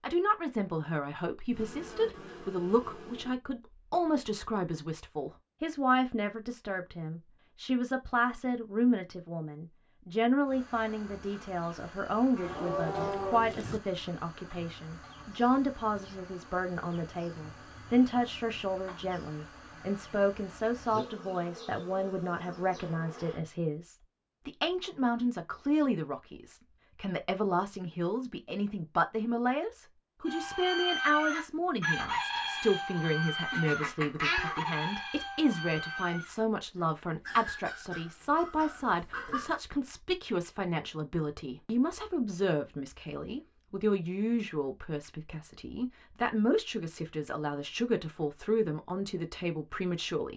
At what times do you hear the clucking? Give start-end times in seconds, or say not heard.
30.2-39.6.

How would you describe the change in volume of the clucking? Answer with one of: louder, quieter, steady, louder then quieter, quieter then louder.
quieter.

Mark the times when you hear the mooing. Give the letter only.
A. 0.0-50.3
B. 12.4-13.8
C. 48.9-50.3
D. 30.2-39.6
B.